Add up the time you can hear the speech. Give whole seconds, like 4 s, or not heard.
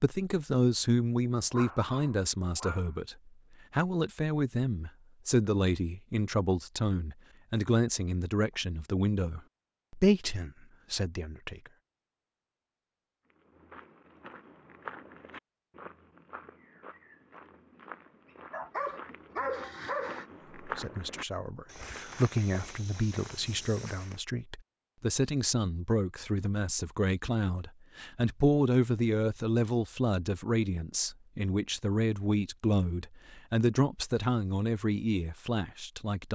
27 s.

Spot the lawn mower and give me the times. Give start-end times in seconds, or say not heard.
not heard.